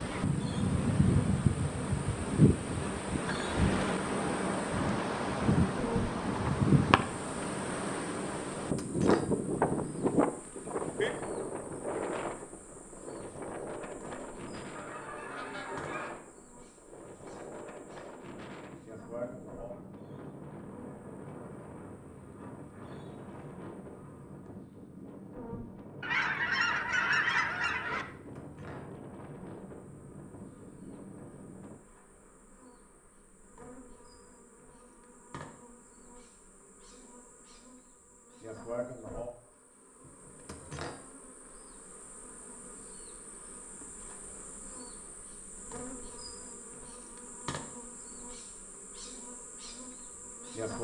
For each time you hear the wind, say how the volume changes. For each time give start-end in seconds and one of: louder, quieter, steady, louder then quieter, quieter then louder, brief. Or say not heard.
0.0-31.8 quieter.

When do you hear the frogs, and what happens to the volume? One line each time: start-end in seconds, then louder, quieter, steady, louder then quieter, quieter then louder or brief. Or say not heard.
not heard.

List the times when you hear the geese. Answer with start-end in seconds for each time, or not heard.
14.8-16.1, 26.0-28.1.